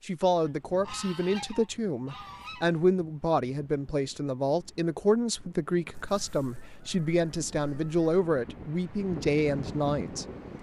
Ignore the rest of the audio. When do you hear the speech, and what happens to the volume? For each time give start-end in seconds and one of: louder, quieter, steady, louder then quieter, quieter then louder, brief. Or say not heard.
0.1-10.5 steady.